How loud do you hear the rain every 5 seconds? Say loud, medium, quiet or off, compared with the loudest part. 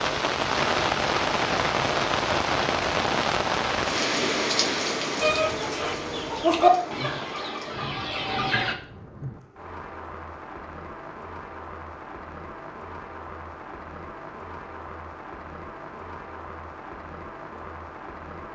loud, medium, quiet, quiet.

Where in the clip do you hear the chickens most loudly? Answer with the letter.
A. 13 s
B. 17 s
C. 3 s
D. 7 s
D.